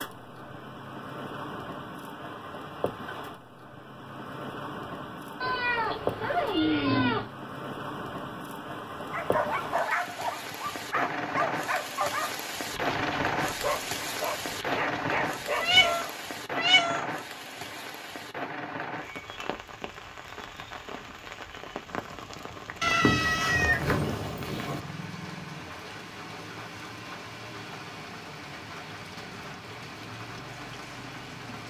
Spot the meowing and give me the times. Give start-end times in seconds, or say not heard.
5.4-7.3, 15.6-17.1, 22.8-24.8.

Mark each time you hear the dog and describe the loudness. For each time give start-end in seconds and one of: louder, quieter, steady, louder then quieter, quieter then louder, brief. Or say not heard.
9.1-16.1 steady.